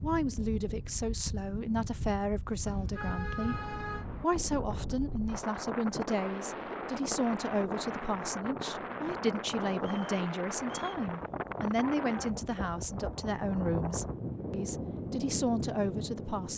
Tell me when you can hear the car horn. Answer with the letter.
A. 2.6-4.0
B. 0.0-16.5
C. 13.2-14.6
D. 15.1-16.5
A.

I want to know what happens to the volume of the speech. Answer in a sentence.
The volume of the speech stays about the same.